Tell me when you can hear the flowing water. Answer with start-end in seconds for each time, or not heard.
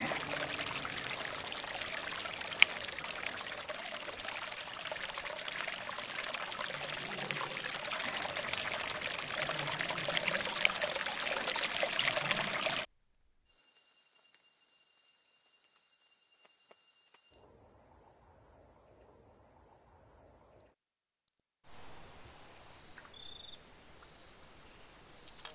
0.0-12.8.